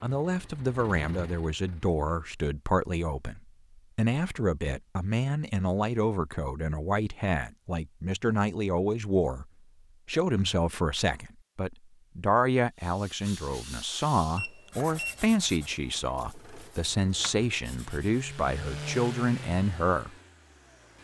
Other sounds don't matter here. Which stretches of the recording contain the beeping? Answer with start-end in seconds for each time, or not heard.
14.3-15.2.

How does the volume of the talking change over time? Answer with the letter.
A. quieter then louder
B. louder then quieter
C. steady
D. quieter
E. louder
C.